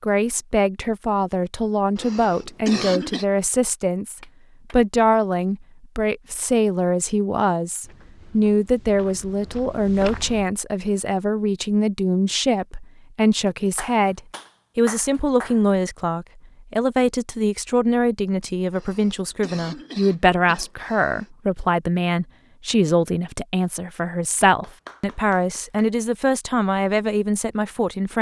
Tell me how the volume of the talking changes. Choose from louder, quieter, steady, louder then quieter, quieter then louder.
steady.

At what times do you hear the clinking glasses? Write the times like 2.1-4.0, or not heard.
not heard.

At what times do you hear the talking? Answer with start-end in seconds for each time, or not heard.
0.0-28.1.